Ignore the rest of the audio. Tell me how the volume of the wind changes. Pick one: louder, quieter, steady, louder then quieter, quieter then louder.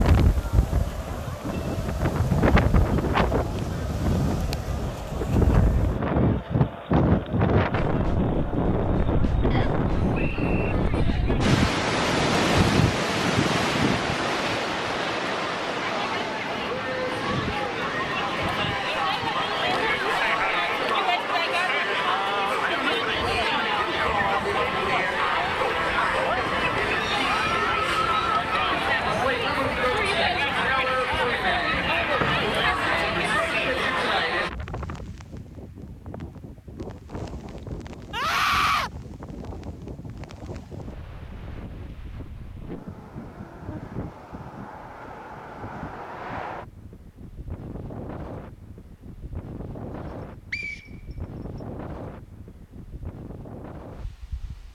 quieter.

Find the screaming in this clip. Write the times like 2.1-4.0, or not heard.
38.1-38.9.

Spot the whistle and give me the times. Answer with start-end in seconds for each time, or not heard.
9.5-10.8, 32.1-32.8, 50.0-51.6.